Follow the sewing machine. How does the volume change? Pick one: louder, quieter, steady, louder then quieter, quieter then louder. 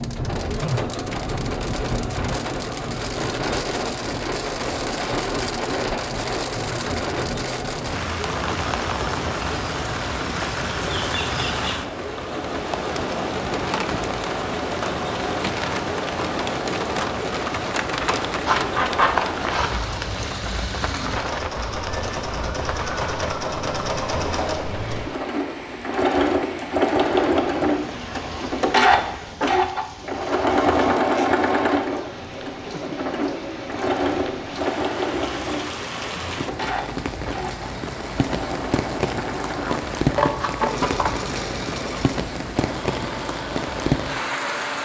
louder then quieter.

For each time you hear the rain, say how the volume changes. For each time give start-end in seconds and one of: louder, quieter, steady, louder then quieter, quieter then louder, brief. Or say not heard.
0.0-44.8 quieter then louder.